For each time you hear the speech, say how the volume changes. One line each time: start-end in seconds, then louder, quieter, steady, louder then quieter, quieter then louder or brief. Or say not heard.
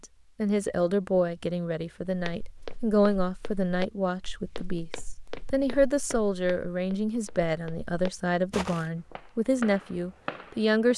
0.0-10.9 steady.